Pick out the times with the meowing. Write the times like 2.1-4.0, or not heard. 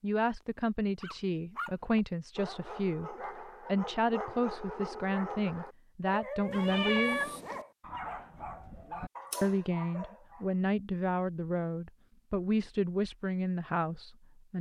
6.5-7.7.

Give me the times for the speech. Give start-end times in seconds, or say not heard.
0.0-7.3, 9.4-14.5.